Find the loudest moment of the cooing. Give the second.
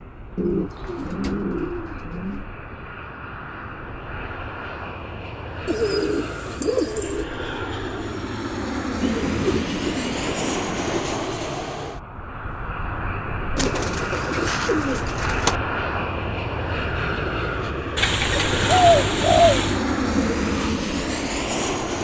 19 s.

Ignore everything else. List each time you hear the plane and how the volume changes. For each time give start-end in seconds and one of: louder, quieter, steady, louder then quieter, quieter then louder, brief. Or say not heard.
0.0-21.9 louder.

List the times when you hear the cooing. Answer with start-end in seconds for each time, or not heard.
0.3-2.5, 5.7-7.2, 9.0-11.0, 13.6-15.6, 17.9-19.8.